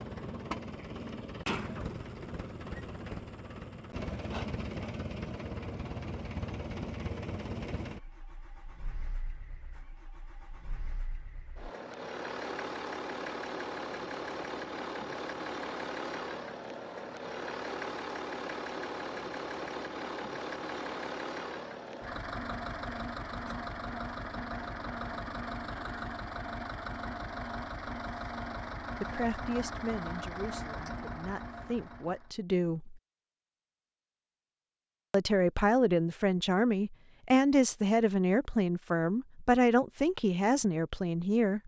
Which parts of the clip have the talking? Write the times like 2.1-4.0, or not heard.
29.0-33.0, 35.1-41.6.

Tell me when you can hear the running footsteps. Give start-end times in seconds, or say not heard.
not heard.